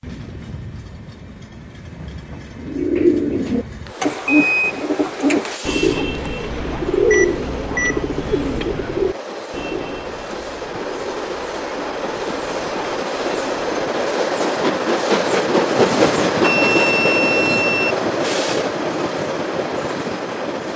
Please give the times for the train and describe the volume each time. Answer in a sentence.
The train can be heard from 0.0 to 20.7 s, getting louder.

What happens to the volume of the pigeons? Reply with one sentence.
The loudness of the pigeons goes down.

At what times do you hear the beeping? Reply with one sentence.
The beeping can be heard from 3.9 to 4.7 s, from 7.1 to 8.1 s and from 16.4 to 17.9 s.